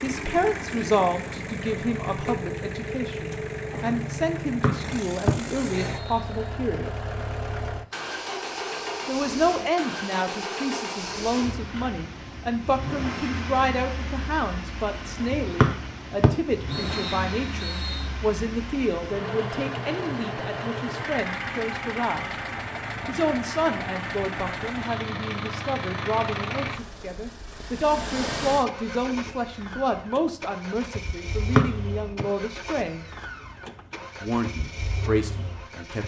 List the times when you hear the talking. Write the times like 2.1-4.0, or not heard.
0.0-7.0, 9.1-22.4, 23.1-33.0, 34.2-36.0.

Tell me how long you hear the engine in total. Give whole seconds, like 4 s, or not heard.
36 s.